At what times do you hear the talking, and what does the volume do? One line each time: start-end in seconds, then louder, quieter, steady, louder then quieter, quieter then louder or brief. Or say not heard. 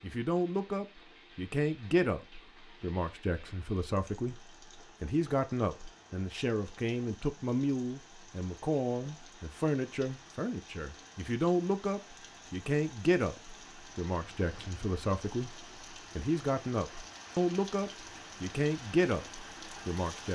0.0-20.3 steady.